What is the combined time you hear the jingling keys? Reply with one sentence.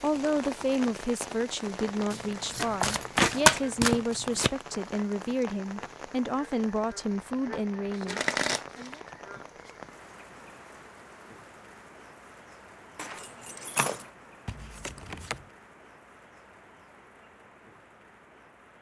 The jingling keys can be heard for 2 seconds in total.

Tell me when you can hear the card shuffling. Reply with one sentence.
The card shuffling can be heard from 2.1 to 4.5 s, from 7.9 to 9.7 s and from 14.4 to 15.5 s.